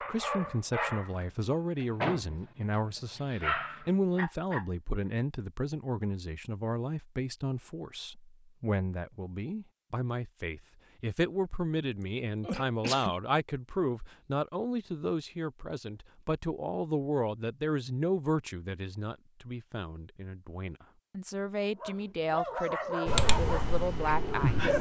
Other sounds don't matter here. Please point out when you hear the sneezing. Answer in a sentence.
The sneezing can be heard from 12.0 to 13.2 s.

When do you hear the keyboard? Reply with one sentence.
The keyboard can be heard from 23.1 to 24.7 s.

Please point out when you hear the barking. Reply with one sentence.
You can hear the barking from 0.0 to 4.7 s and from 21.8 to 24.7 s.